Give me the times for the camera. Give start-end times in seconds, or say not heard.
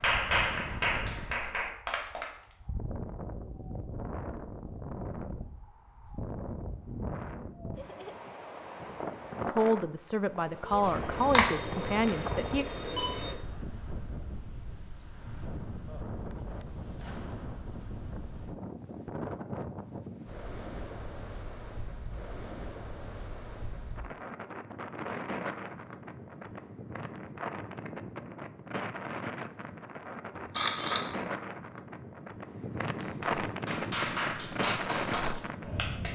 10.8-13.3, 30.4-31.1.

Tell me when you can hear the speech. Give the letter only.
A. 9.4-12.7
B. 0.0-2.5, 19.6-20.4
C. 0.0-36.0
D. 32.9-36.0
A.